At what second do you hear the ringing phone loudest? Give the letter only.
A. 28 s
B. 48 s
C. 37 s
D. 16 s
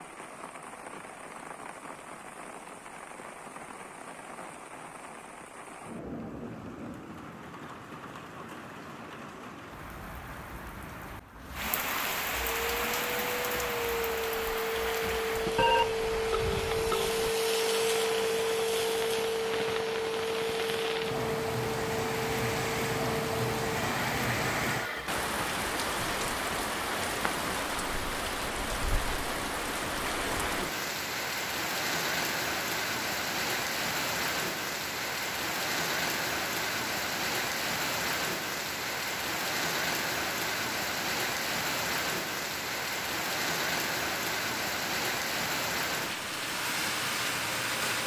D.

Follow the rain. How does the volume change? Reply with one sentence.
The loudness of the rain goes up.